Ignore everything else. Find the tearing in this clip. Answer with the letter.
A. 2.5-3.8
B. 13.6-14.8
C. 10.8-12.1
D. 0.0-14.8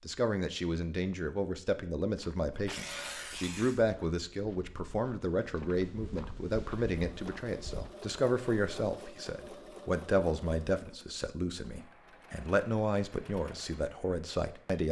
A.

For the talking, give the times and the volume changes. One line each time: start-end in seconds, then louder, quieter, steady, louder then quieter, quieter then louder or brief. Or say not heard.
0.0-14.8 steady.